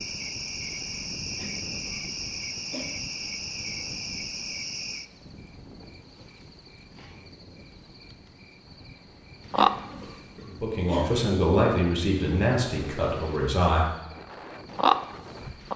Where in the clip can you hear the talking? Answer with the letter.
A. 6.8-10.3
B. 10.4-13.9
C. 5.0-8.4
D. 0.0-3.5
B.